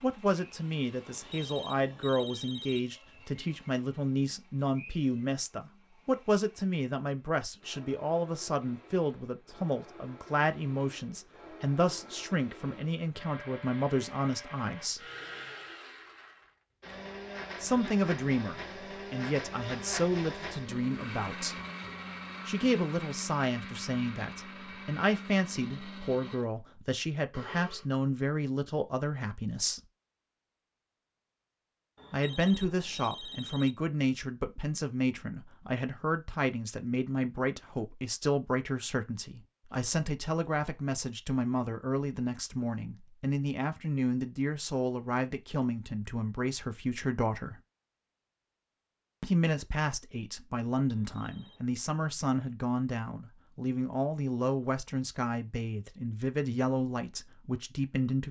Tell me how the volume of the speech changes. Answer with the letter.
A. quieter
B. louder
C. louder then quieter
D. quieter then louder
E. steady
E.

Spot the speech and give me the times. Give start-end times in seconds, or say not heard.
0.0-15.0, 17.6-21.6, 22.4-29.8, 32.1-47.6, 49.2-58.2.